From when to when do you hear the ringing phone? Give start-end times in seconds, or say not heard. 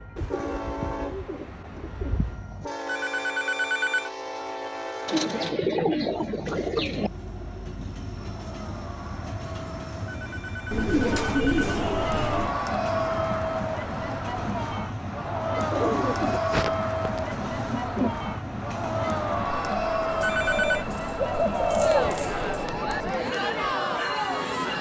2.9-4.1, 10.1-11.8, 20.2-20.9.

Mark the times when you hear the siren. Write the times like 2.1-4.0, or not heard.
not heard.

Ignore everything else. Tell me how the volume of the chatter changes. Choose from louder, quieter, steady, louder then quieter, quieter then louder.
louder.